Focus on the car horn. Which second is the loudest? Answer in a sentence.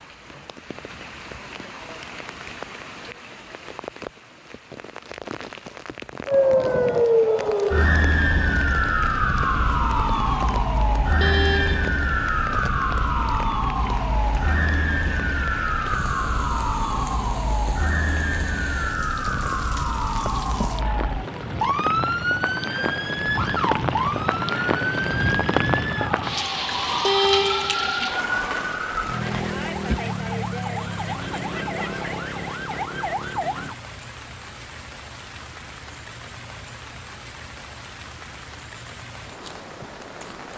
The loudest moment of the car horn is at 27 seconds.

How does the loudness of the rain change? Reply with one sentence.
The loudness of the rain goes up, then down.